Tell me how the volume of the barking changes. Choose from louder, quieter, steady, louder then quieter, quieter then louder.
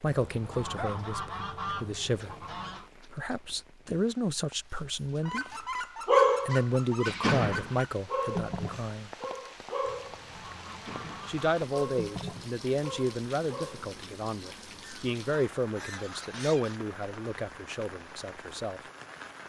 quieter.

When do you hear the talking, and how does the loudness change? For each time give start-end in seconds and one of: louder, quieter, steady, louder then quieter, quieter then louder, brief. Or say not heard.
0.0-2.4 brief
3.0-5.7 brief
6.5-9.1 brief
11.2-18.8 quieter.